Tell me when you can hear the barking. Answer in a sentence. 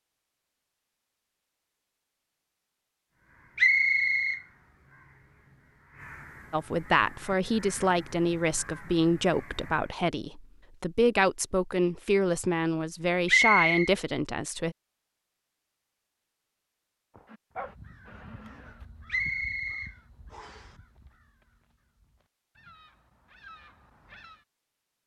You can hear the barking from 17.1 to 18.8 s.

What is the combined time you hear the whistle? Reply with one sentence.
You can hear the whistle for 3 seconds altogether.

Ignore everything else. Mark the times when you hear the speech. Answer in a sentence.
You can hear the speech from 6.5 to 14.8 s.